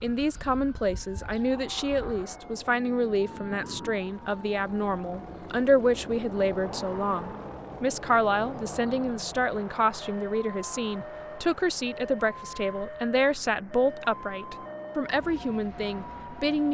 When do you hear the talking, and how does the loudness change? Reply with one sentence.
You can hear the talking from 0.0 to 16.6 s, at a steady volume.